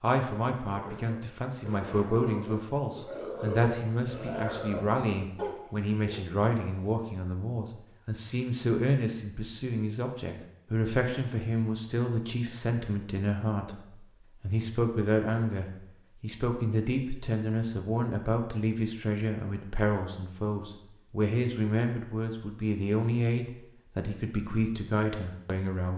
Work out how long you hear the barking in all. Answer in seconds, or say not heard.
6 s.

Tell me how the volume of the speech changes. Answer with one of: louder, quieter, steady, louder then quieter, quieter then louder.
steady.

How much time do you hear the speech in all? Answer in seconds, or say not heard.
25 s.